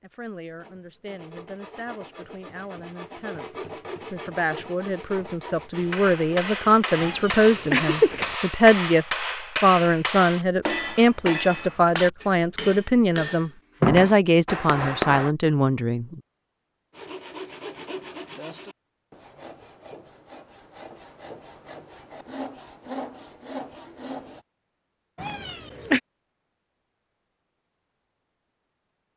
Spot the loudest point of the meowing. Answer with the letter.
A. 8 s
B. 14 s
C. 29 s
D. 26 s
A.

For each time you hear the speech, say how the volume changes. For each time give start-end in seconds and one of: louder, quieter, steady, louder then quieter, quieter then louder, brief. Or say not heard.
0.0-16.2 louder.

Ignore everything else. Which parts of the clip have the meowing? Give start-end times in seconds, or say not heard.
7.0-8.3, 25.1-26.0.